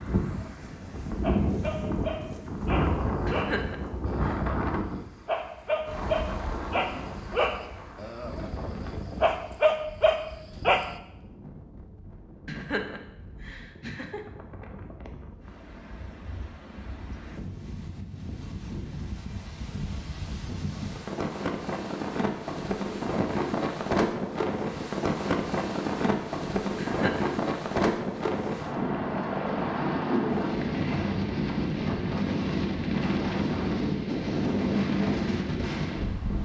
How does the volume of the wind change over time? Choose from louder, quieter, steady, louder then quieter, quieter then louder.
quieter then louder.